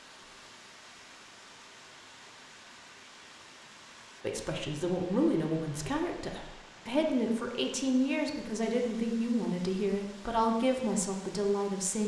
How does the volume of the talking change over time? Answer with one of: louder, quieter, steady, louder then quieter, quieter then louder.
steady.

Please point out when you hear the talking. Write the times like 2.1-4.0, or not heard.
4.2-12.0.